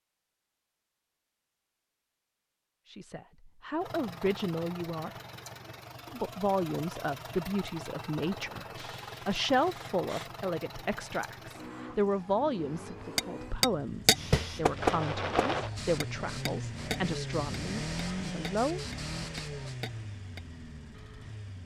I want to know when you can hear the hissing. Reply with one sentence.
You can hear the hissing from 8.2 to 10.3 s and from 14.1 to 19.8 s.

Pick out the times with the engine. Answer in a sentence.
You can hear the engine from 3.8 to 21.6 s.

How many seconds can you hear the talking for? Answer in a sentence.
The talking can be heard for 14 seconds in total.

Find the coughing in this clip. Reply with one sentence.
You can't hear the coughing here.